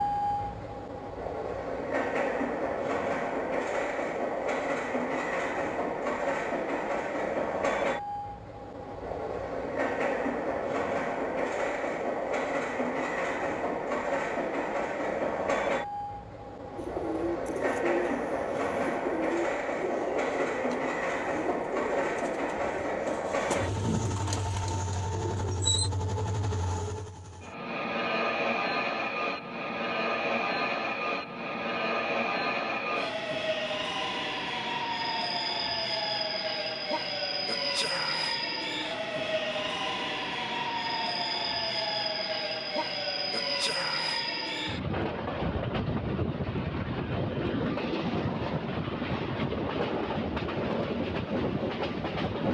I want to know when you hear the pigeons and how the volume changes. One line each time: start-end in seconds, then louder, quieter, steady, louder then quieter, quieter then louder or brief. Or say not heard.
16.8-25.9 steady.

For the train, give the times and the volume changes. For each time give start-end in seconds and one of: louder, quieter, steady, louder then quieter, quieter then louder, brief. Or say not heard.
0.0-52.4 steady.